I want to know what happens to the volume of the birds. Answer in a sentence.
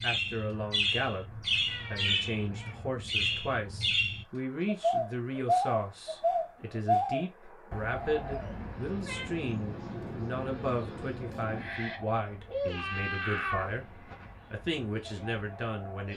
The loudness of the birds goes down.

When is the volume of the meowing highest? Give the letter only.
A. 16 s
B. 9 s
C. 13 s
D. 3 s
C.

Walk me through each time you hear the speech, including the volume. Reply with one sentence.
The speech can be heard from 0.0 to 16.1 s, at a steady volume.